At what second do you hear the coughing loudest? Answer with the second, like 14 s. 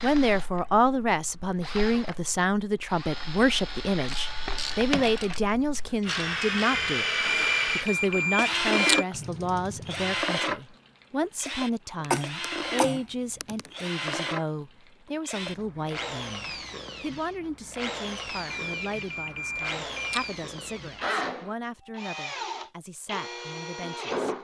12 s.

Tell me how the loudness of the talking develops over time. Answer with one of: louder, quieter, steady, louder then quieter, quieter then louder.
quieter.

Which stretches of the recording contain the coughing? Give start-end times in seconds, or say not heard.
12.0-13.7.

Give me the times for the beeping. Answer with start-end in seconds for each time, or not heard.
7.2-9.1, 18.4-20.4.